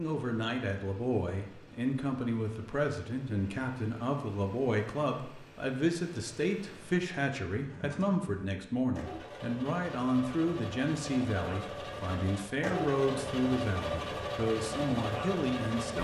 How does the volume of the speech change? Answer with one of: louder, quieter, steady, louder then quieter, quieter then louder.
steady.